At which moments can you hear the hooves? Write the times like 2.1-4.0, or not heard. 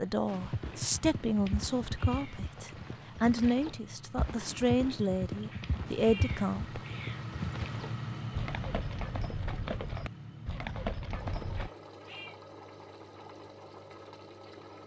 0.2-11.7.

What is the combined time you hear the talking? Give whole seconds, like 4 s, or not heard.
7 s.